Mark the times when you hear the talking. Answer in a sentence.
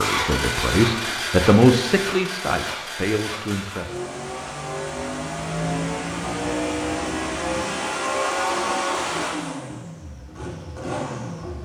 The talking can be heard from 0.0 to 4.0 s.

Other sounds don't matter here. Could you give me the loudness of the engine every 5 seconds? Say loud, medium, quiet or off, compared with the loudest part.
loud, loud, medium.